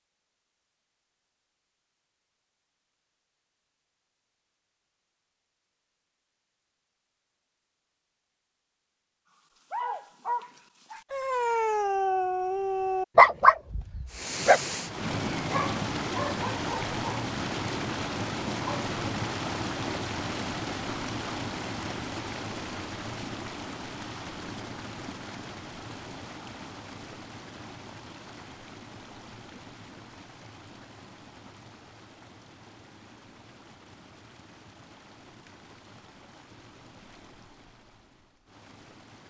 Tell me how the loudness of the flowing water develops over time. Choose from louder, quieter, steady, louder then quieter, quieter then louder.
quieter.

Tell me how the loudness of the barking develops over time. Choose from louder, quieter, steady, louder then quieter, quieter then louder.
louder then quieter.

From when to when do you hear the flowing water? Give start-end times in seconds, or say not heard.
14.1-39.2.